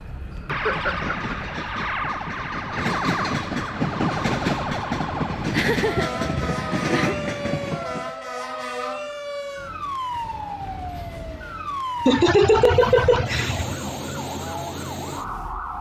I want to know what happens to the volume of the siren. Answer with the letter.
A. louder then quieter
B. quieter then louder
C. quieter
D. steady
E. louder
D.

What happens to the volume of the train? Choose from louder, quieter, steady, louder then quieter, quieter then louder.
louder.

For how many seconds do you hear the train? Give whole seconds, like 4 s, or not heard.
8 s.